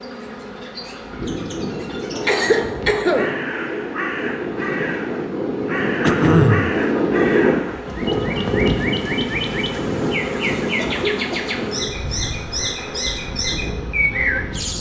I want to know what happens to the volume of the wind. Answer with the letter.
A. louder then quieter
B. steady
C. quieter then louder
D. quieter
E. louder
A.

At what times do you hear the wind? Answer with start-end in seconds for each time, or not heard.
0.0-14.7.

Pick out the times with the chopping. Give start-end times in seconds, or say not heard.
not heard.